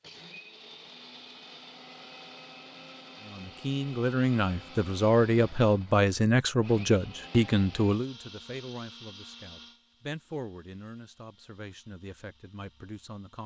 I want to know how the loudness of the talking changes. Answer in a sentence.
The volume of the talking goes down.